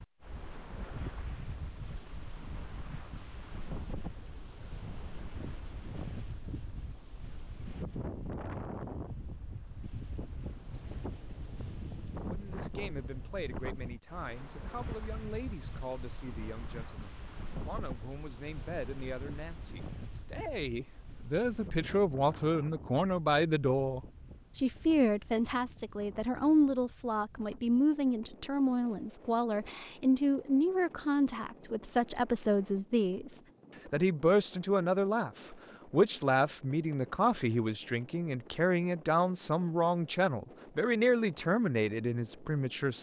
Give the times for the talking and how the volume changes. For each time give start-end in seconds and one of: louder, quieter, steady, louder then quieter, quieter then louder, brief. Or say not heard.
12.3-42.9 louder.